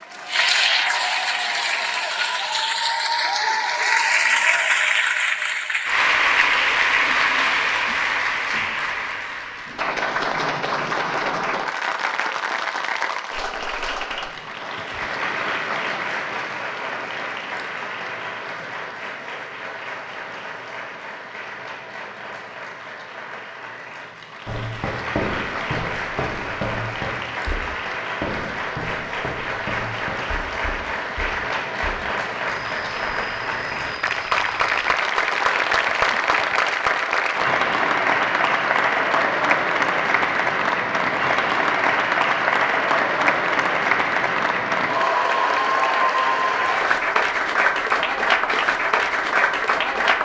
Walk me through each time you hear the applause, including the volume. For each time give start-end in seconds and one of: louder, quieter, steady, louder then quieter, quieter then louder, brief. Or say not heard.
0.0-50.2 quieter then louder.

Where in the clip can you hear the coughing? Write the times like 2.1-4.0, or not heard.
not heard.